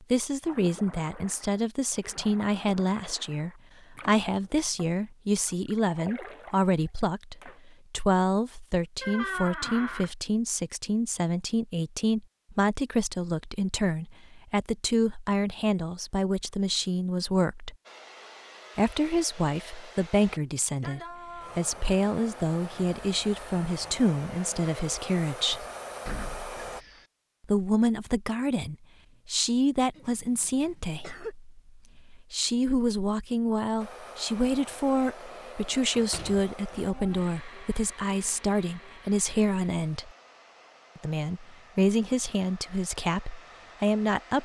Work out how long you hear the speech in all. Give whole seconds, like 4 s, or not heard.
41 s.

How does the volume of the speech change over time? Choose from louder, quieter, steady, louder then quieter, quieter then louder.
steady.